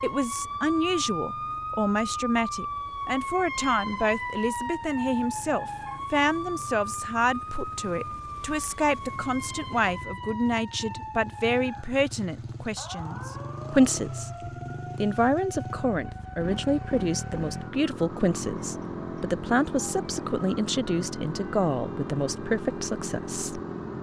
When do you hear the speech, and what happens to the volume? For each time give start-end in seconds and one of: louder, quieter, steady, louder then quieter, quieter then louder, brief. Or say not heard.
0.0-23.6 steady.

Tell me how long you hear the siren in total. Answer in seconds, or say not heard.
24 s.